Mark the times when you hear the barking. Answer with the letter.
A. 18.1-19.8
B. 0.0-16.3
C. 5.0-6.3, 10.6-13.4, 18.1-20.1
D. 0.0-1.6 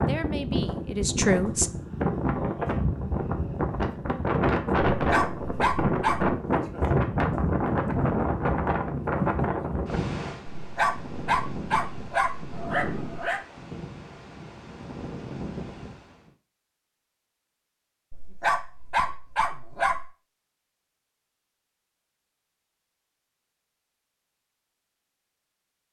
C.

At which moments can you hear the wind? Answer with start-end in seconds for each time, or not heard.
0.0-16.3.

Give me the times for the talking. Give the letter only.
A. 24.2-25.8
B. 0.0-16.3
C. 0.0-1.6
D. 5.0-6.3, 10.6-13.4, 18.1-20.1
C.